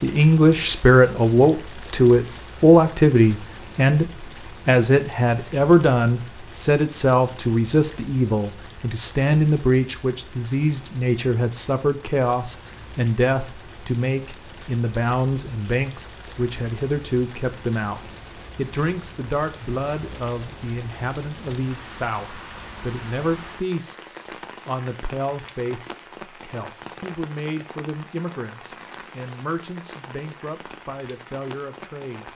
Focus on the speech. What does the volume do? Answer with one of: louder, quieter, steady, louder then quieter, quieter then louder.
quieter.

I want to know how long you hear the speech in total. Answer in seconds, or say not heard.
32 s.